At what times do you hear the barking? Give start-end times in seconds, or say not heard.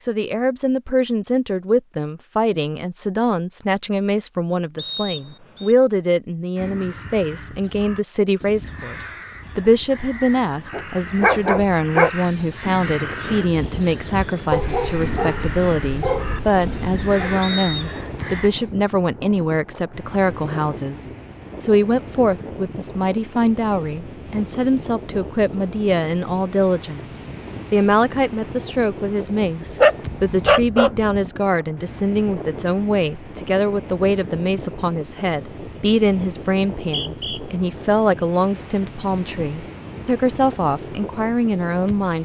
10.7-12.1, 14.5-17.3, 29.6-31.3.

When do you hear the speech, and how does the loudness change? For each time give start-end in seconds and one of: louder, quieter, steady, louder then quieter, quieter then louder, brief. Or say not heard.
0.0-42.2 steady.